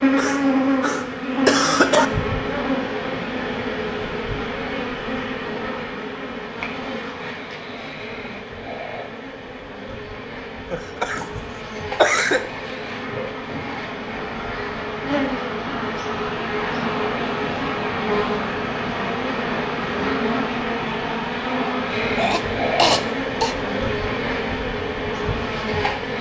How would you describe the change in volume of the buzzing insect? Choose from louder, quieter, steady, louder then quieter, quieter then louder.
quieter then louder.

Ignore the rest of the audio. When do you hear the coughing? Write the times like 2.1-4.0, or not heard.
0.1-2.0, 10.7-12.4, 22.1-23.6.